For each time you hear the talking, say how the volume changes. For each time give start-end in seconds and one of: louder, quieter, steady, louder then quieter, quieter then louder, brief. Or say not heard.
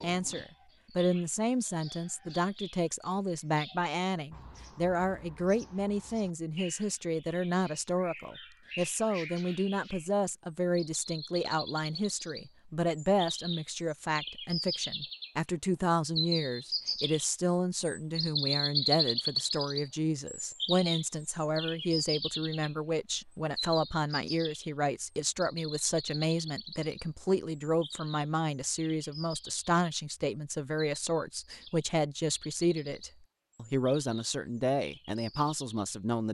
0.0-36.2 steady.